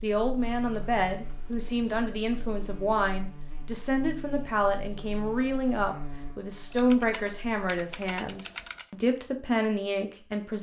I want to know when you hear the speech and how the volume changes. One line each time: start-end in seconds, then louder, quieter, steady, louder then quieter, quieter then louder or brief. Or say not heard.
0.0-10.5 steady.